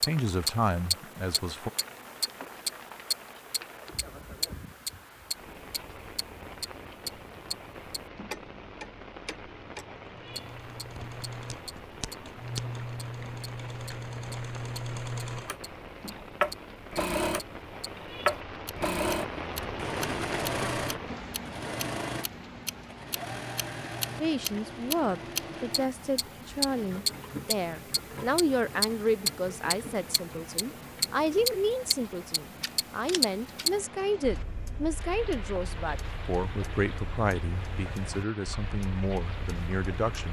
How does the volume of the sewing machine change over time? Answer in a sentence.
The volume of the sewing machine goes up, then down.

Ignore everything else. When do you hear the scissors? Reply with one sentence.
You can hear the scissors from 10.9 to 12.7 s and from 32.6 to 33.6 s.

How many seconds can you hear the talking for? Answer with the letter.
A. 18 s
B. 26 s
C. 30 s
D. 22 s
A.